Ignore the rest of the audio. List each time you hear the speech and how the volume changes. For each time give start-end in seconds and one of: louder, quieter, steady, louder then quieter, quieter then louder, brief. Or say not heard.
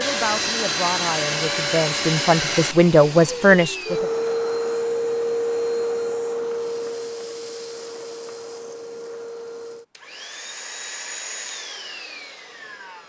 0.0-4.0 louder.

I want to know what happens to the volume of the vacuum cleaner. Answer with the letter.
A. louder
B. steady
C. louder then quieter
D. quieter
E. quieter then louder
D.